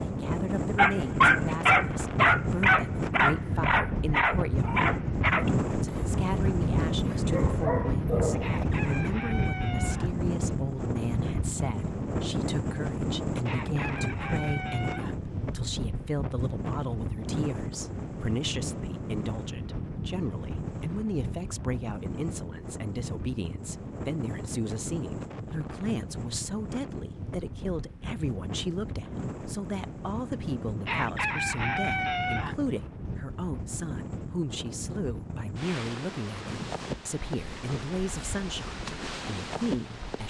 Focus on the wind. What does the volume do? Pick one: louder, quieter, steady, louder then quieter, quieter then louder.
quieter.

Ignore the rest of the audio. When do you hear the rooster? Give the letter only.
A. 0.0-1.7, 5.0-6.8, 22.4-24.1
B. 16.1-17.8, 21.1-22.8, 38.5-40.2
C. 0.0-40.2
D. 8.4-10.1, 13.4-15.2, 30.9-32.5
D.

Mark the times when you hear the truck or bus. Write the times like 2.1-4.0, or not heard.
not heard.